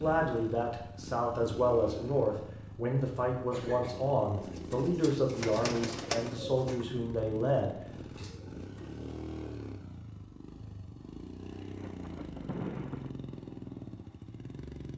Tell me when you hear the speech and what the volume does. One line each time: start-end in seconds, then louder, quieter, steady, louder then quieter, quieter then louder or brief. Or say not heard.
0.0-8.3 steady.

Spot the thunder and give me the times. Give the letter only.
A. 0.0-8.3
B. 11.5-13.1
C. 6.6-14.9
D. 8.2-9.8
B.